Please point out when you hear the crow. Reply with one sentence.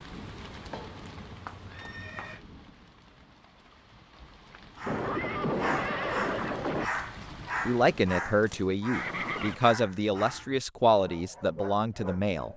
You can't hear the crow here.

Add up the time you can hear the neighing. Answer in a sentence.
The neighing can be heard for 5 seconds in total.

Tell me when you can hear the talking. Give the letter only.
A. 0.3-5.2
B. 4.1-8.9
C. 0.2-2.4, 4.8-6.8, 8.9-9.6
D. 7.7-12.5
D.